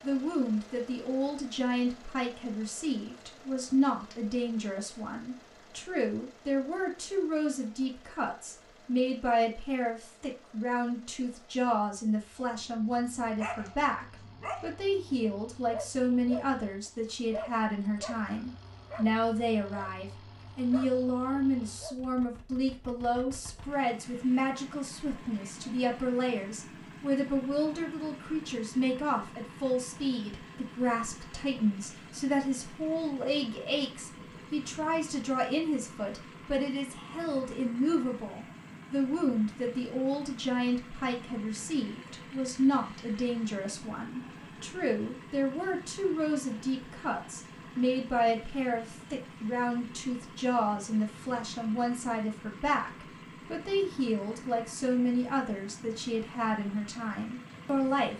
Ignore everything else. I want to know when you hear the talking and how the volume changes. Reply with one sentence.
You can hear the talking from 0.0 to 58.1 s, at a steady volume.